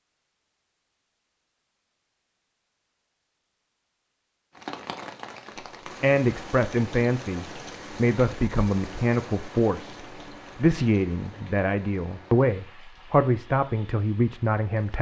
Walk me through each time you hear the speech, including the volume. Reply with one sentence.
The speech can be heard from 6.0 to 14.9 s, at a steady volume.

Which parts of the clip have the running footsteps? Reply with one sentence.
You can't hear the running footsteps here.